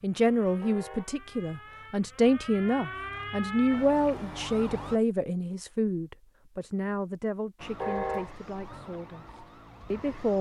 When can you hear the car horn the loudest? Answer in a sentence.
The volume of the car horn peaks at 8 seconds.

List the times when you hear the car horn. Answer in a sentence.
The car horn can be heard from 0.6 to 1.1 s and from 7.8 to 8.3 s.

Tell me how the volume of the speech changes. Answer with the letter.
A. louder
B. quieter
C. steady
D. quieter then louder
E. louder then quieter
B.